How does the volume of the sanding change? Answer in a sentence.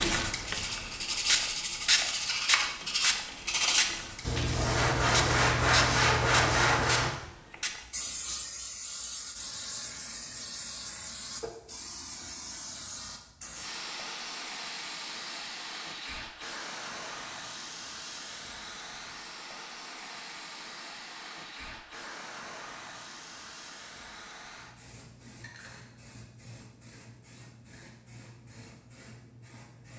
The loudness of the sanding goes up.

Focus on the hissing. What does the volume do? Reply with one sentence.
The volume of the hissing goes down.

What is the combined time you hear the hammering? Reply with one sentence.
You can't hear the hammering here.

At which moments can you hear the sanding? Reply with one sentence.
The sanding can be heard from 0.5 to 7.1 s.